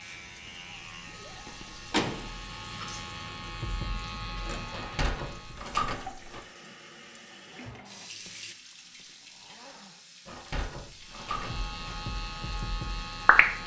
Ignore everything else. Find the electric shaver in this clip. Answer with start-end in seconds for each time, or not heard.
0.0-5.8, 11.0-13.6.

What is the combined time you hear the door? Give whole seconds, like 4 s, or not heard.
4 s.